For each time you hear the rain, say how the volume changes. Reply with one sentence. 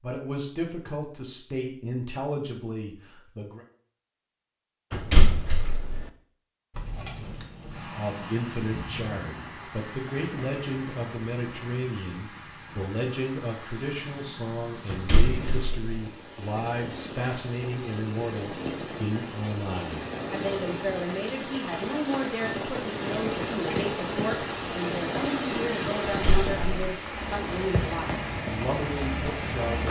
You can hear the rain from 6.7 to 29.8 s, getting louder.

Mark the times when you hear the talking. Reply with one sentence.
You can hear the talking from 0.0 to 3.6 s and from 7.6 to 29.8 s.